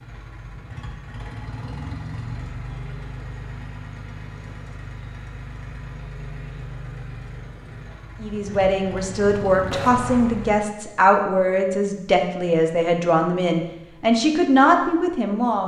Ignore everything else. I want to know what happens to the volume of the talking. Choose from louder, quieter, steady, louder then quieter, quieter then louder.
steady.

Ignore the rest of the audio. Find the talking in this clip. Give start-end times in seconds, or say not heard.
8.2-15.6.